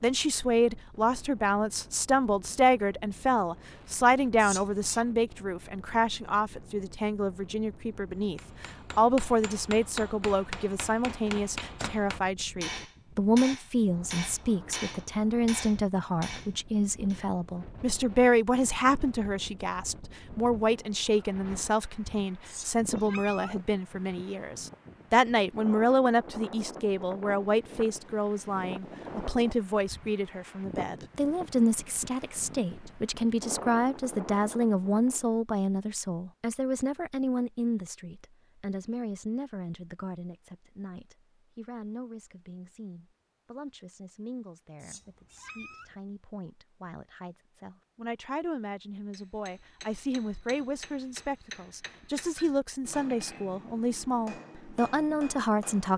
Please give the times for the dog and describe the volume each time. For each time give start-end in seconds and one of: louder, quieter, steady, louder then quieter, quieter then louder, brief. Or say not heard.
not heard.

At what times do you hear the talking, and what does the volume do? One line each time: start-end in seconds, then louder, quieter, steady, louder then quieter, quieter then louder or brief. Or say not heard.
0.0-55.9 quieter.